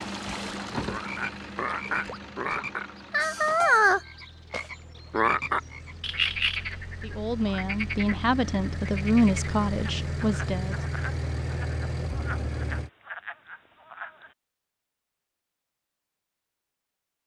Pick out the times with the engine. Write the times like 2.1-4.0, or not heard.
0.0-12.9.